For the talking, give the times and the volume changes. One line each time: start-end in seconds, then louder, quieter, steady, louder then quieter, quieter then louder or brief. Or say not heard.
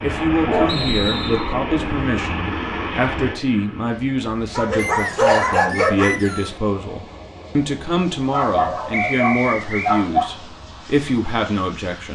0.0-12.1 steady.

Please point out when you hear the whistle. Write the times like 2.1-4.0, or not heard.
0.7-1.6, 4.8-6.6, 8.9-9.9.